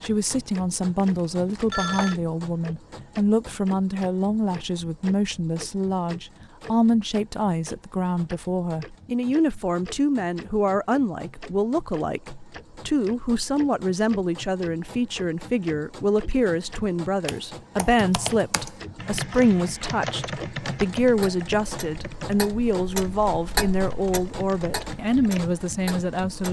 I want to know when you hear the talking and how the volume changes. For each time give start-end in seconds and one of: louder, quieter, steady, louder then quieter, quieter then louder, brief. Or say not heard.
0.0-26.4 steady.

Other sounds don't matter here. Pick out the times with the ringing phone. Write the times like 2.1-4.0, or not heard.
0.9-2.1.